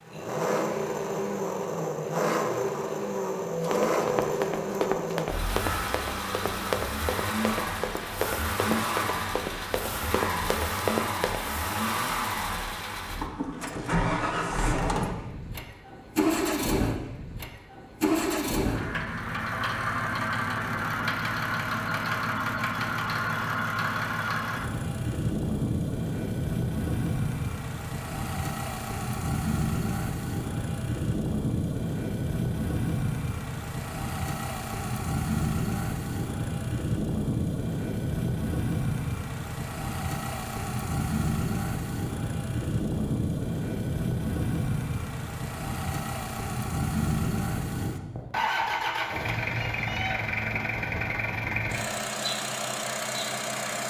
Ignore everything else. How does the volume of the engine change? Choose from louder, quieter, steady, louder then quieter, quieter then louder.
steady.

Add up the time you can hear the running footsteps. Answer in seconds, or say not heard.
8 s.